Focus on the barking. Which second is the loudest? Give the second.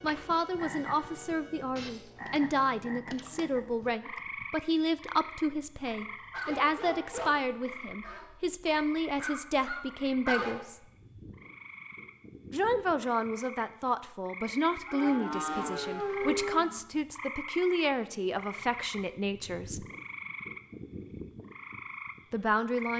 10 s.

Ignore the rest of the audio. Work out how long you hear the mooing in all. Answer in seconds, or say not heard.
2 s.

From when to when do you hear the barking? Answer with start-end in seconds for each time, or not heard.
6.3-8.4, 9.2-10.6.